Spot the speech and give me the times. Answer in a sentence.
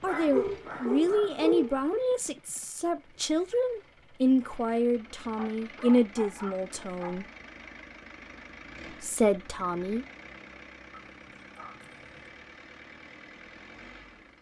The speech can be heard from 0.0 to 7.2 s and from 9.0 to 10.1 s.